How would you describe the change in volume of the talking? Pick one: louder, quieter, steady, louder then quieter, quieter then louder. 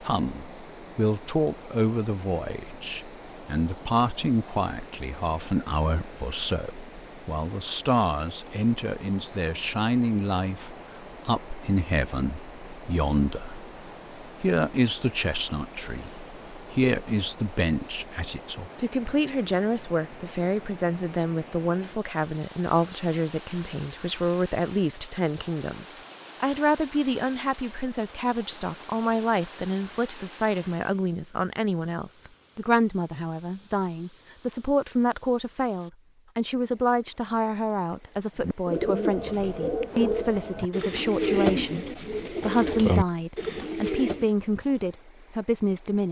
steady.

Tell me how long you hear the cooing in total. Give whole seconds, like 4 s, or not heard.
6 s.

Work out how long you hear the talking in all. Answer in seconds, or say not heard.
46 s.